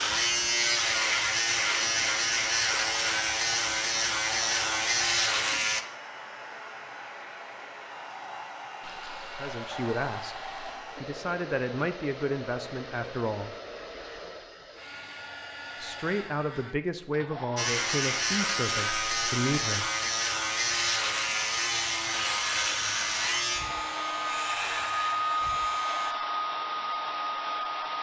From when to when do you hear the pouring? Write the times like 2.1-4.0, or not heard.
8.8-10.8.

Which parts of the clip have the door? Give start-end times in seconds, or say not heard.
not heard.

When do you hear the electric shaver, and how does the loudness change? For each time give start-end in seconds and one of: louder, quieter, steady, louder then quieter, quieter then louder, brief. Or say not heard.
0.0-5.8 steady
17.6-26.1 quieter.